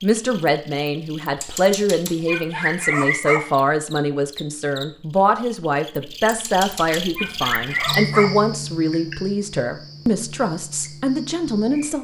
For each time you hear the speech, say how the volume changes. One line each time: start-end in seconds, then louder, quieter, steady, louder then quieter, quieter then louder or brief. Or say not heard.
0.0-11.9 steady.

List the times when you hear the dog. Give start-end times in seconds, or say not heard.
1.4-3.4, 6.2-8.2.